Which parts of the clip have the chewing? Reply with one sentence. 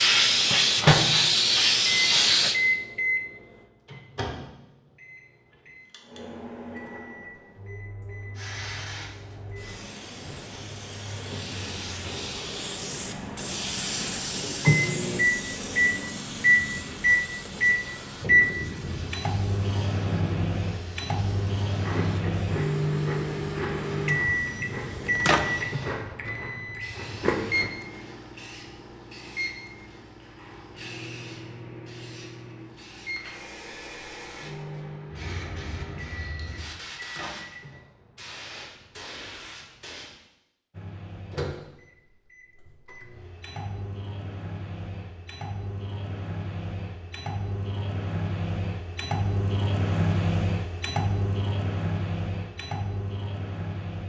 You can hear the chewing from 21.8 to 27.7 s.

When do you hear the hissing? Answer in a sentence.
You can hear the hissing from 0.0 to 2.5 s and from 8.3 to 40.1 s.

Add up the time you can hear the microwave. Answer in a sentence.
You can hear the microwave for 46 seconds altogether.